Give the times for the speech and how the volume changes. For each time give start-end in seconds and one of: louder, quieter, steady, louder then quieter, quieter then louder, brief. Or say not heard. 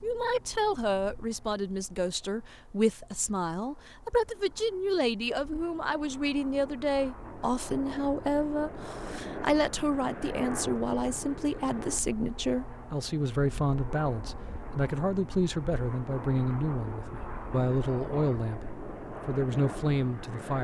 0.0-20.5 steady.